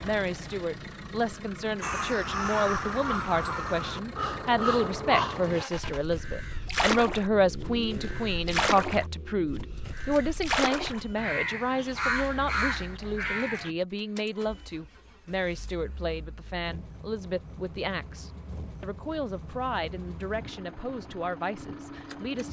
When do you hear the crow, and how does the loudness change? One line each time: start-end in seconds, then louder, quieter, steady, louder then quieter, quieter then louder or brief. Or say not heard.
1.8-13.7 steady.